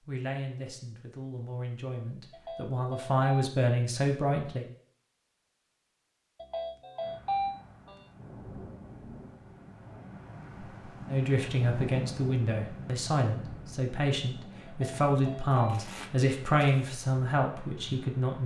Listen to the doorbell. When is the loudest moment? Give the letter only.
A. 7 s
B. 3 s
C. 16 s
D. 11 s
A.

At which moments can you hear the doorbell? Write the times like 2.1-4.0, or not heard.
2.3-3.5, 6.4-8.1, 14.7-15.8.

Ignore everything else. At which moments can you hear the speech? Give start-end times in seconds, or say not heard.
0.1-4.7, 11.1-18.4.